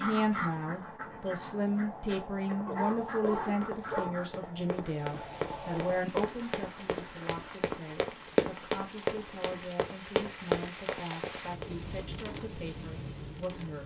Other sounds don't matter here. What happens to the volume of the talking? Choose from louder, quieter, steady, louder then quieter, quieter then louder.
quieter.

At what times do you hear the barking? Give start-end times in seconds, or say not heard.
2.6-4.2.